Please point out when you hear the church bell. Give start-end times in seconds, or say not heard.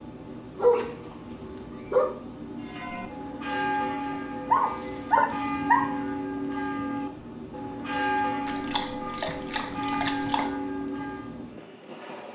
2.6-11.4.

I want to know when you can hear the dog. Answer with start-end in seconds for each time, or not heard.
0.6-2.1, 4.5-5.8, 8.4-10.4.